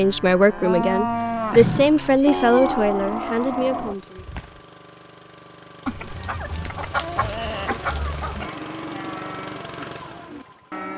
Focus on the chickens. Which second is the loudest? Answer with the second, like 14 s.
7 s.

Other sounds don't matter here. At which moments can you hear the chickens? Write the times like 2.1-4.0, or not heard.
5.8-8.5.